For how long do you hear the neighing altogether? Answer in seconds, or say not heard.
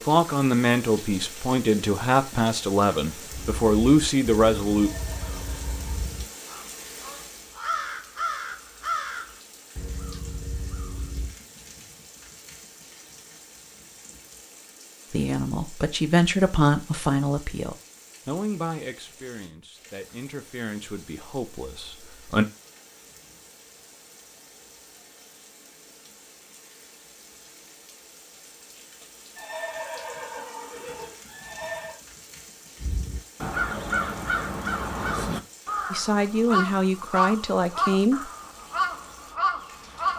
4 s.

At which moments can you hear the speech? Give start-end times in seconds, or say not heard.
0.1-4.9, 15.1-22.4, 35.9-38.3.